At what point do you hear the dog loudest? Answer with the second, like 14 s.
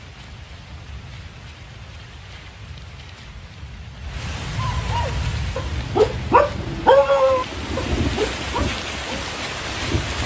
7 s.